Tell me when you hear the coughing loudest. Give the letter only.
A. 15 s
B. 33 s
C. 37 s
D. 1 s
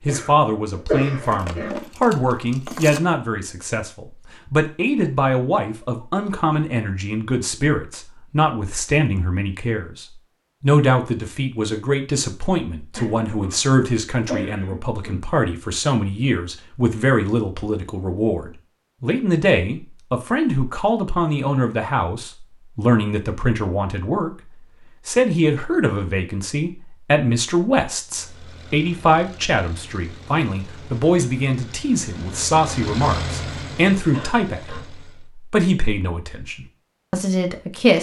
D.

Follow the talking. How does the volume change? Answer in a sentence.
The volume of the talking stays about the same.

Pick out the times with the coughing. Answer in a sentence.
The coughing can be heard from 0.1 to 1.8 s, from 12.9 to 15.2 s and from 34.1 to 34.9 s.